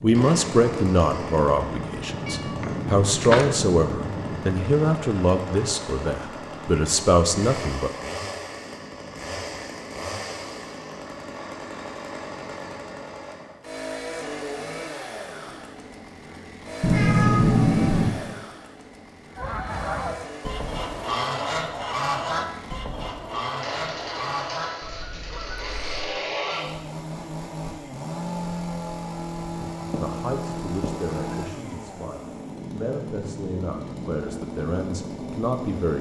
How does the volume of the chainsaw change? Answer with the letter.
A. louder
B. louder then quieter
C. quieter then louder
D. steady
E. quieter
D.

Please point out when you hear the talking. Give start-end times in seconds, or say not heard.
0.0-7.9, 30.0-35.9.